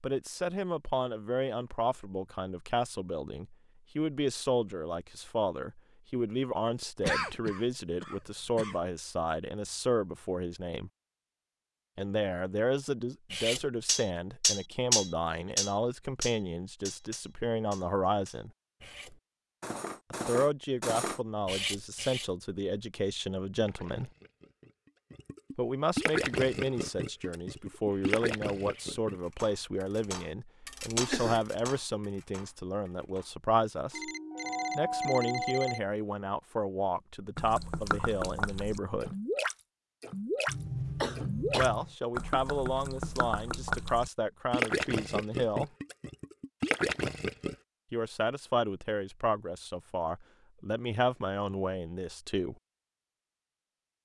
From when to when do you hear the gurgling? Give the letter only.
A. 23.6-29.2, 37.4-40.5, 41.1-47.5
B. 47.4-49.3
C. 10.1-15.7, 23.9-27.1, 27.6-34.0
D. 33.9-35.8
A.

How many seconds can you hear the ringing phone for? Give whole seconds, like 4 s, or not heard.
2 s.